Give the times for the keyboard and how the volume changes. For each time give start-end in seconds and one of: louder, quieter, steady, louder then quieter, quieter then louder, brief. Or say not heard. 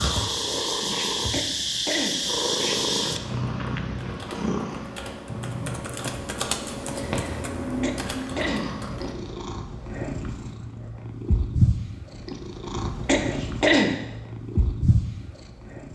2.0-9.2 louder.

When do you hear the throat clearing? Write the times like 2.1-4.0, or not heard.
1.3-2.1, 7.8-8.7, 13.1-13.9.